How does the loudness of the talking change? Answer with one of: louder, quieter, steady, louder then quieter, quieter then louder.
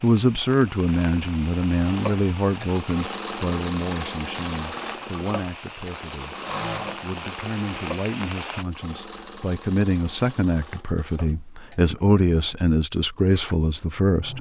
quieter then louder.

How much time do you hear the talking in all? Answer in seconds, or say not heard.
14 s.